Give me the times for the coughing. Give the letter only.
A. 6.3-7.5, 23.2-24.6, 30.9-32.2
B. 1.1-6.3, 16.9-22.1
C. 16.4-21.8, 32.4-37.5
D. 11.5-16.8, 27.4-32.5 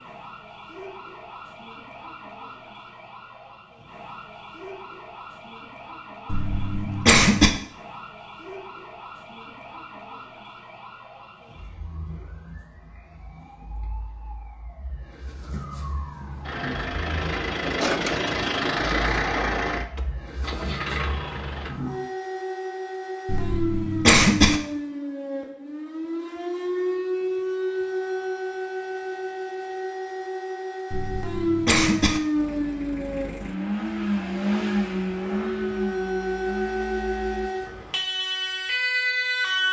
A.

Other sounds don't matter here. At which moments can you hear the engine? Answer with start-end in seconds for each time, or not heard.
16.4-21.8, 32.4-37.5.